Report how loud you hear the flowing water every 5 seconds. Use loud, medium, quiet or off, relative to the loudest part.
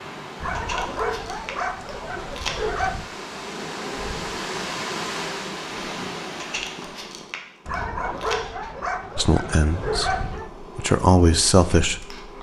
loud, loud, off.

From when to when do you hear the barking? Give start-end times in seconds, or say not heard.
0.4-3.1, 7.7-10.5.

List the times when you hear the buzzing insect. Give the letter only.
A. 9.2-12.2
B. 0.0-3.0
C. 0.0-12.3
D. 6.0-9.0
C.